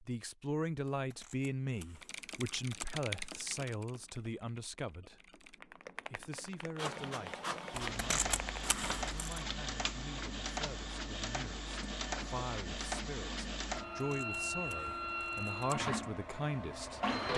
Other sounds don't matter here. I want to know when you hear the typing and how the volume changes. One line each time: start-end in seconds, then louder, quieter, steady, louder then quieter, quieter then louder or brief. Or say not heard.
2.0-8.6 quieter then louder.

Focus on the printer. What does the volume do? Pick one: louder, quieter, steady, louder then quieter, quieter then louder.
steady.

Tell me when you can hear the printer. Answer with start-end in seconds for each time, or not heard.
6.8-17.3.